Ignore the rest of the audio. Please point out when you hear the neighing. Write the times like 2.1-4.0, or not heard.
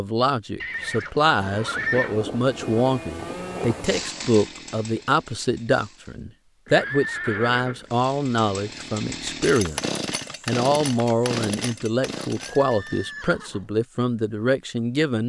0.6-2.2, 6.7-8.1, 12.3-13.7.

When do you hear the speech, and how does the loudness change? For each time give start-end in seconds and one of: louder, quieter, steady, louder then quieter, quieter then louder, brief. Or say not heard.
0.0-15.2 steady.